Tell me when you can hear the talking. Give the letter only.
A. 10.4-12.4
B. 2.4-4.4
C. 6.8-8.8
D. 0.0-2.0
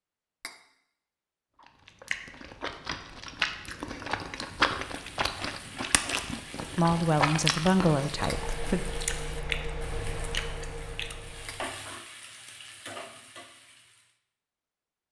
C.